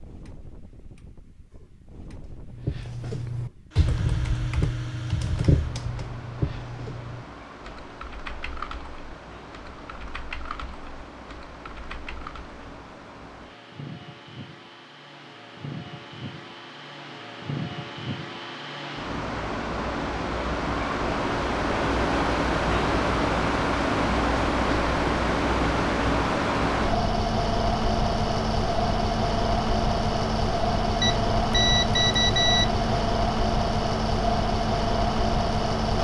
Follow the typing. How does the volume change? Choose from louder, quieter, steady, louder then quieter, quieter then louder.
quieter.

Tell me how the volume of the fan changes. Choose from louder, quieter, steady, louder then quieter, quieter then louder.
louder.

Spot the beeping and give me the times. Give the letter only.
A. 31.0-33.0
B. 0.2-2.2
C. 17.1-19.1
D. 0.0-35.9
A.